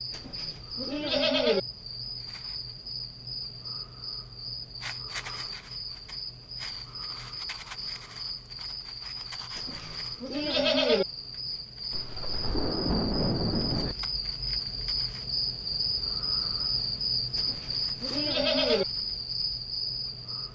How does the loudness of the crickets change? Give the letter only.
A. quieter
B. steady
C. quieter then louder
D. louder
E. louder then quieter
D.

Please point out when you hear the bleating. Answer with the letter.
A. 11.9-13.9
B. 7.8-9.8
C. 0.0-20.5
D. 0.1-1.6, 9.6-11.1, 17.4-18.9
D.